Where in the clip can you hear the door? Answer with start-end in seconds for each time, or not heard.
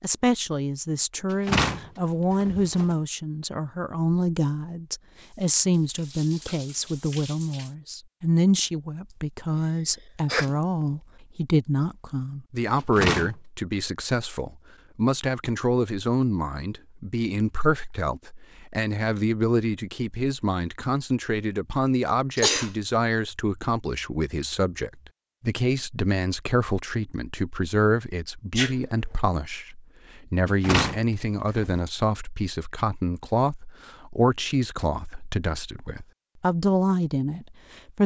1.4-3.0, 12.9-13.3, 30.6-31.8.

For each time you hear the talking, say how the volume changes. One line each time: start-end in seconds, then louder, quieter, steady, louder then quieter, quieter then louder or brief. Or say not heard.
0.0-38.0 steady.